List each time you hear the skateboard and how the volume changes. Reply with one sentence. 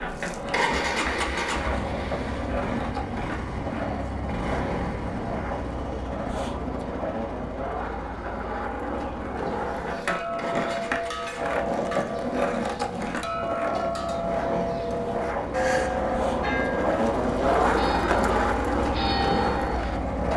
You can hear the skateboard from 0.0 to 20.3 s, getting louder.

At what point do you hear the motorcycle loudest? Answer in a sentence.
The loudest moment of the motorcycle is at 1 second.